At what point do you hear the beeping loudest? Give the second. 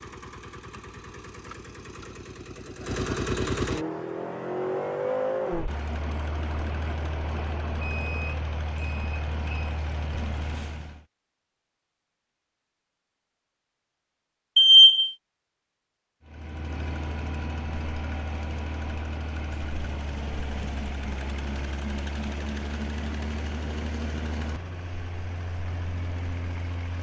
15 s.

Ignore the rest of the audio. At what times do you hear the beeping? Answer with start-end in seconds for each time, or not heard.
7.8-9.8, 14.6-15.1.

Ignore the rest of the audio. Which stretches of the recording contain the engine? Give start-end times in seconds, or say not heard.
0.0-11.1, 16.2-26.9.